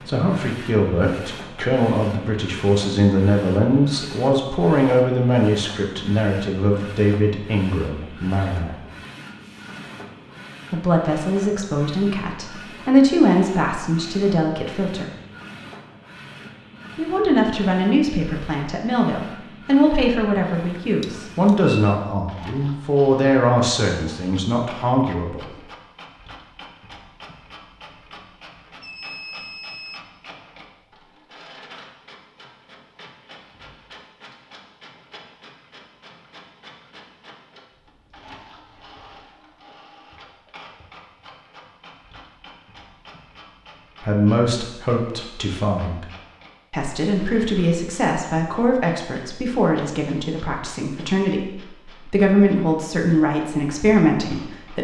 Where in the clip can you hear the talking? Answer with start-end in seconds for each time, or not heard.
0.1-8.8, 10.7-15.1, 16.9-25.4, 44.0-46.0, 46.7-54.7.